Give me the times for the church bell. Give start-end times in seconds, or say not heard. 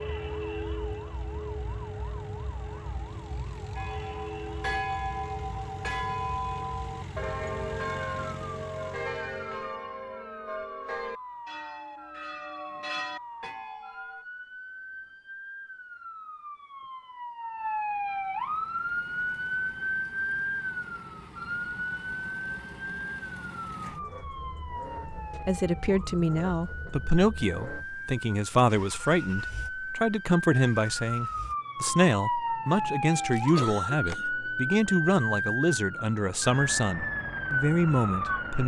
3.8-14.2.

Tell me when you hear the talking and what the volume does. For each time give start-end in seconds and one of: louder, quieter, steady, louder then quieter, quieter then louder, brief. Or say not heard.
25.4-38.6 steady.